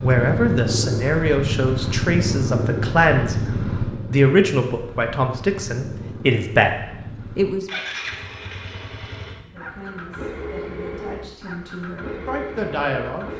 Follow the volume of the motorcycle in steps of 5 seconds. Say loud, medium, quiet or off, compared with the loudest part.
loud, medium, medium.